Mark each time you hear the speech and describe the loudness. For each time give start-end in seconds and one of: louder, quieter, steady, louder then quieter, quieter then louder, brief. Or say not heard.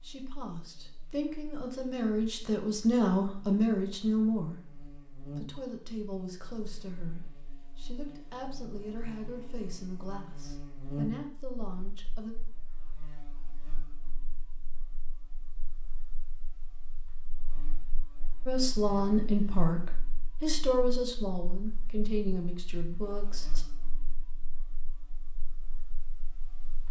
0.0-12.3 louder then quieter
18.4-23.6 quieter.